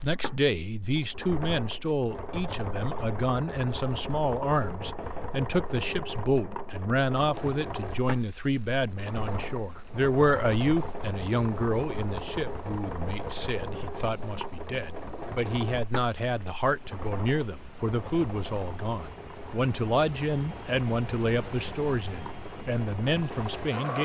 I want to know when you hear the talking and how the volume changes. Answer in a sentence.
You can hear the talking from 0.0 to 23.9 s, at a steady volume.